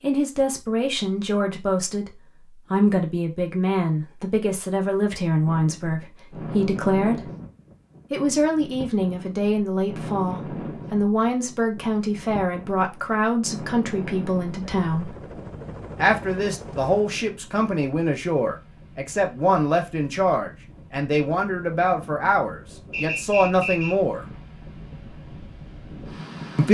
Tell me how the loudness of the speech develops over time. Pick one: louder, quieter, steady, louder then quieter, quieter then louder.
steady.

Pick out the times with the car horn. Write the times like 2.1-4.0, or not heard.
not heard.